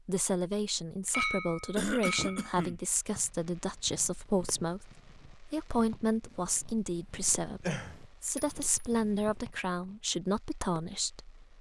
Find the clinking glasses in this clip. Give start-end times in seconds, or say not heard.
1.1-2.5, 8.3-8.8.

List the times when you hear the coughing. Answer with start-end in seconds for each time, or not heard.
1.8-2.8, 7.6-8.4.